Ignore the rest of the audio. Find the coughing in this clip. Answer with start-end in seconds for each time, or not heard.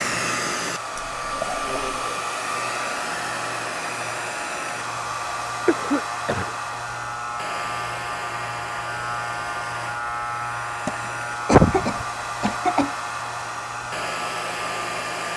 0.9-2.2, 5.7-6.5, 10.8-12.9.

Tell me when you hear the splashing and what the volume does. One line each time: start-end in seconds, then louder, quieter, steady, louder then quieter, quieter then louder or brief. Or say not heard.
not heard.